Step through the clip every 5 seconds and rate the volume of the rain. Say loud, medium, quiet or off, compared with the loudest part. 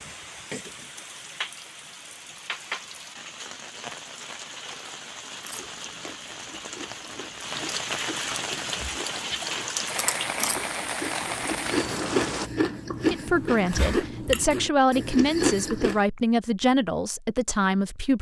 medium, loud, loud, off.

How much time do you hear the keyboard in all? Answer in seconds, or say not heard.
not heard.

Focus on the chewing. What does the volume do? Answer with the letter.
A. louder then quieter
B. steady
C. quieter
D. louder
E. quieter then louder
D.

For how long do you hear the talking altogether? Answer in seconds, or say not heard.
5 s.